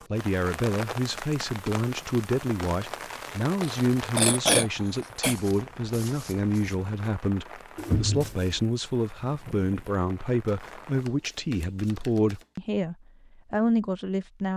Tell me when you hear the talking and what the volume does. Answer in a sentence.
You can hear the talking from 0.1 to 14.5 s, at a steady volume.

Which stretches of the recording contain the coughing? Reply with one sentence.
The coughing can be heard from 3.6 to 5.3 s and from 7.8 to 8.6 s.